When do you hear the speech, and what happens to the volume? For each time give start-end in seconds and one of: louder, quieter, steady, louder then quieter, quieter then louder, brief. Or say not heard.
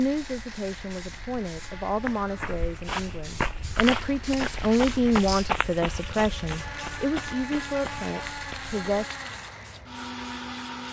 0.0-9.1 louder then quieter.